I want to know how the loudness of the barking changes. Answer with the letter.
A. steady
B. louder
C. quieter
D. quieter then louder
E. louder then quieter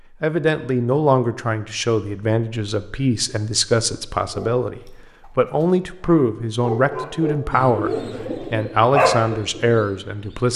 E.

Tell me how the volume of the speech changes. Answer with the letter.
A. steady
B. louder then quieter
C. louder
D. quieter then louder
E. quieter
A.